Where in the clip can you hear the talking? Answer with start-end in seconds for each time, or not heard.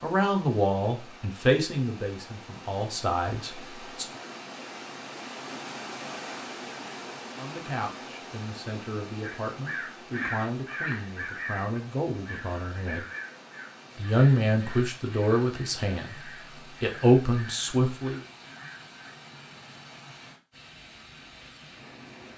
0.0-4.0, 7.3-13.1, 13.9-18.2.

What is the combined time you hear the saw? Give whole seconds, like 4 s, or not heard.
not heard.